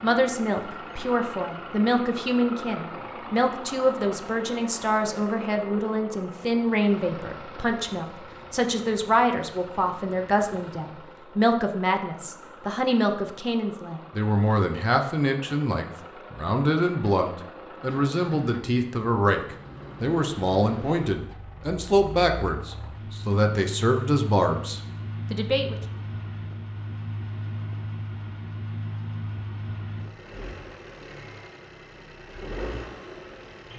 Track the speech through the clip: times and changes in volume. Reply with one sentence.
You can hear the speech from 0.0 to 25.8 s, at a steady volume.